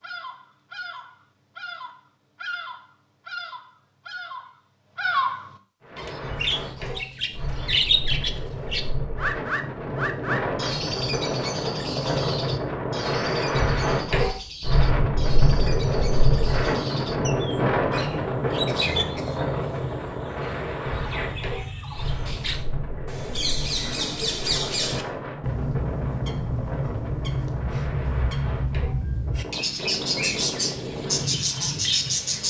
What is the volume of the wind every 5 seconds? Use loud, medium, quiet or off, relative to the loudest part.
off, medium, loud, loud, medium, medium, medium.